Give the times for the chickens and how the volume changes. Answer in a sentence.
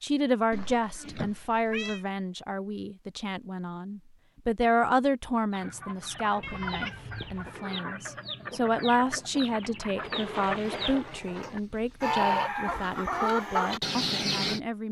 The chickens can be heard from 5.5 to 14.6 s, getting louder.